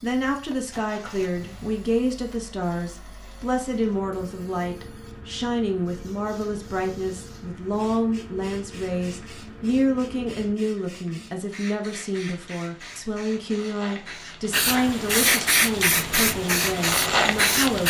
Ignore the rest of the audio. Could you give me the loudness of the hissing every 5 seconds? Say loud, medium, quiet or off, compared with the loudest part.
quiet, quiet, quiet, loud.